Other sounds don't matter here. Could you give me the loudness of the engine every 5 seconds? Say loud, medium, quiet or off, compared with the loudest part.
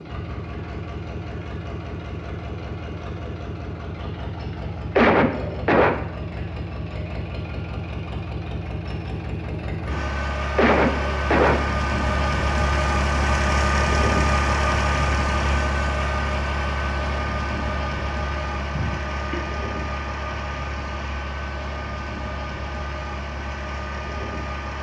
medium, medium, loud, loud, medium.